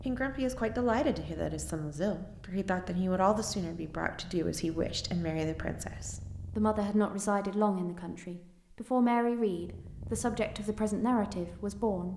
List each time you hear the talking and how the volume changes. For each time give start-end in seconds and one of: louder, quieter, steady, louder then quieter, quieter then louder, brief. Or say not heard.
0.1-12.1 steady.